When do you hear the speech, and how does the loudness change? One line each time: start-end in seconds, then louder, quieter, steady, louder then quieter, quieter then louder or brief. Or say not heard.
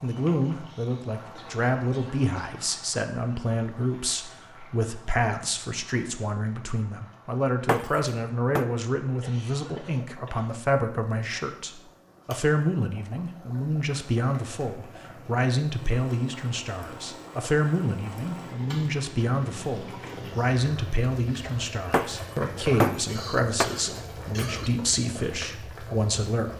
0.0-26.5 steady.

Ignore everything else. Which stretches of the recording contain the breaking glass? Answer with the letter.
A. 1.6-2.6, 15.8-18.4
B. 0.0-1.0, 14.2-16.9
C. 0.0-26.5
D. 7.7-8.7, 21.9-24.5
D.